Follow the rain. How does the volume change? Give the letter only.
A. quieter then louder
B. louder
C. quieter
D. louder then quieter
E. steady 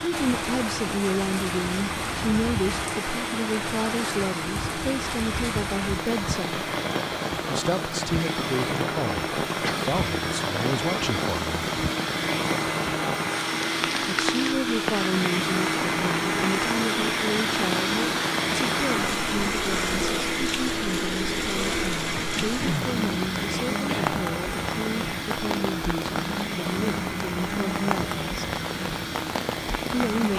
E.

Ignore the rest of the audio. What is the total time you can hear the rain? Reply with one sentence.
You can hear the rain for 30 seconds altogether.